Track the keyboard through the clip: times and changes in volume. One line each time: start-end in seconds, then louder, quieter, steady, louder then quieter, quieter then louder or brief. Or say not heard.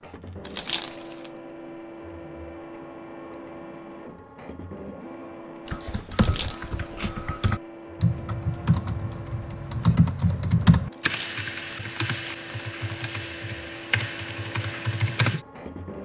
5.7-15.4 louder then quieter.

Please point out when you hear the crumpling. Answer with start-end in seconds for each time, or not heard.
0.5-1.3, 6.1-6.8, 10.9-13.1.